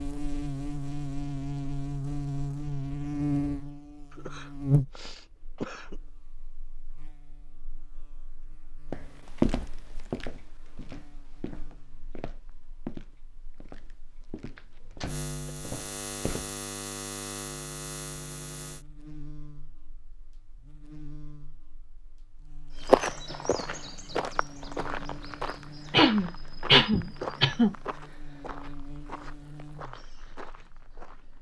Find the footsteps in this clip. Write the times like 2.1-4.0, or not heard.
8.9-16.5, 22.8-31.3.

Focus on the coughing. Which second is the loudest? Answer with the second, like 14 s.
27 s.